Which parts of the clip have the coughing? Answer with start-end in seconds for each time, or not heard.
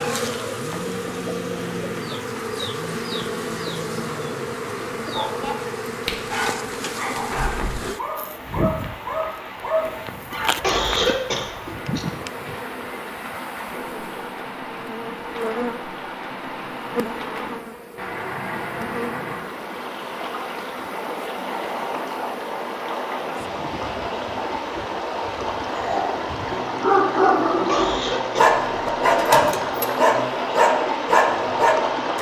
10.6-12.1, 27.6-28.6.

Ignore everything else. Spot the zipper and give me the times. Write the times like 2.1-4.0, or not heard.
not heard.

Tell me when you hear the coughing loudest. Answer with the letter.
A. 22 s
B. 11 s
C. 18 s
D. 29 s
B.